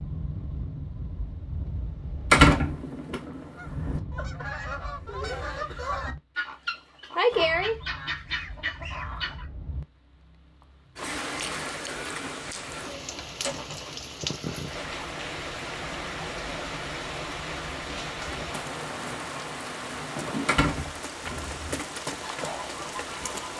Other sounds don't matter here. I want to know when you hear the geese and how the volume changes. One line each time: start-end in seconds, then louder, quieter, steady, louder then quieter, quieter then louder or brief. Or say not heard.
2.5-9.4 louder then quieter
21.1-23.5 brief.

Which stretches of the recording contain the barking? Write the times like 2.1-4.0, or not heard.
not heard.